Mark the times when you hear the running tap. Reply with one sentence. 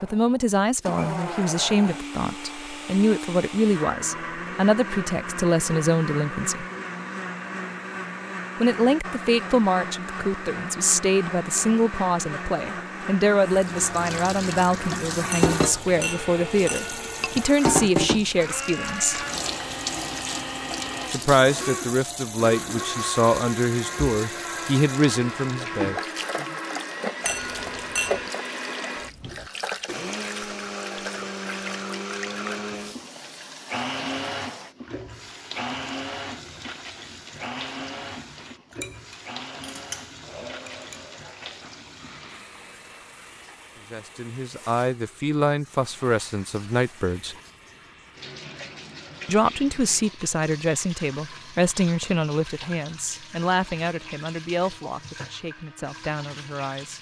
The running tap can be heard from 13.4 to 56.9 s.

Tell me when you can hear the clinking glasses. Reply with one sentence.
The clinking glasses can be heard from 15.3 to 17.5 s, from 27.2 to 28.3 s and from 38.7 to 41.0 s.